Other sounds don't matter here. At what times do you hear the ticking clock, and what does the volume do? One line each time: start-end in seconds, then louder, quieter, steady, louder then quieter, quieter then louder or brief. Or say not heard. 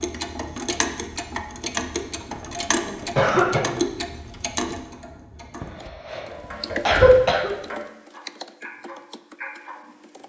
0.0-10.2 quieter.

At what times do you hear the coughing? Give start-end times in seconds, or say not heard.
2.3-3.6, 5.6-6.2, 6.8-7.5.